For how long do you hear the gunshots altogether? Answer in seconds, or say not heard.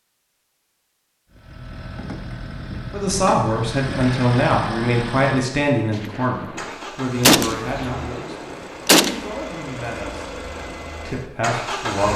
3 s.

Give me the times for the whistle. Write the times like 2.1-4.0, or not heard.
not heard.